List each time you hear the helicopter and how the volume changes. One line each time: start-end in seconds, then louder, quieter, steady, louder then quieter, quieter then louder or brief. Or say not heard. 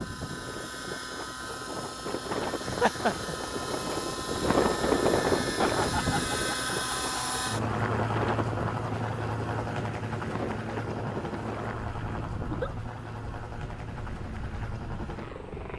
0.0-15.7 louder then quieter.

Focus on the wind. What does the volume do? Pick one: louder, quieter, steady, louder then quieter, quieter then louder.
louder then quieter.